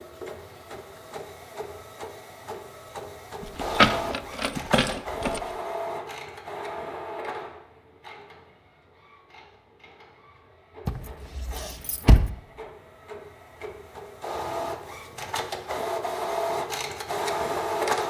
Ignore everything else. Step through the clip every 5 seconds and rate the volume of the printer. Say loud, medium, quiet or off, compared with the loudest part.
medium, medium, medium, loud.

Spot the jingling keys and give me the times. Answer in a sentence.
The jingling keys can be heard from 3.4 to 5.4 s and from 10.8 to 12.3 s.